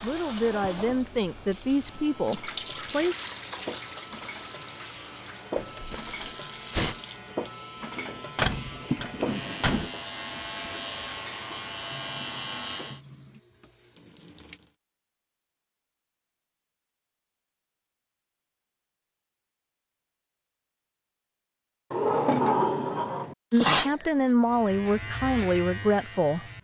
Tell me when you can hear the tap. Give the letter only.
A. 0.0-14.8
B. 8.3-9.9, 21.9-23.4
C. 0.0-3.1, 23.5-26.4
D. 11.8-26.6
A.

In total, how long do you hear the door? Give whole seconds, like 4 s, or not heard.
3 s.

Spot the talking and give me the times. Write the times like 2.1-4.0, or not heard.
0.0-3.1, 23.5-26.4.